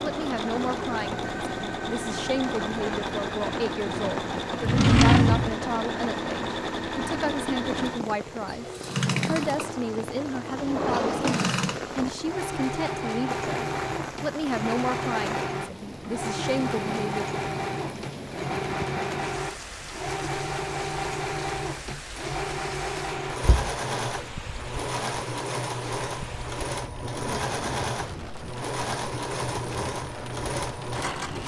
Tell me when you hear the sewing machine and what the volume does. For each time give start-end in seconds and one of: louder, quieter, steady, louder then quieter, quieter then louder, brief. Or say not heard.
0.0-31.4 steady.